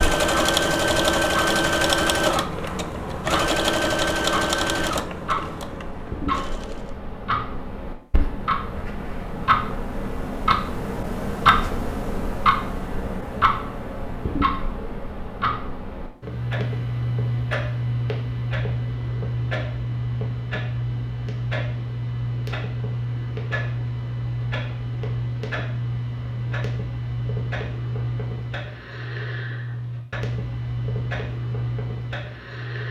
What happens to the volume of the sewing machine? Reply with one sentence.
The loudness of the sewing machine goes down.